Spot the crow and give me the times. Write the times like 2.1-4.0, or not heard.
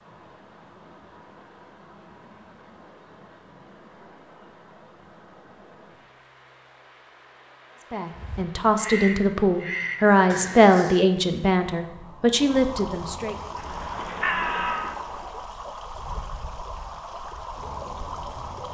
8.1-11.1, 13.6-15.4.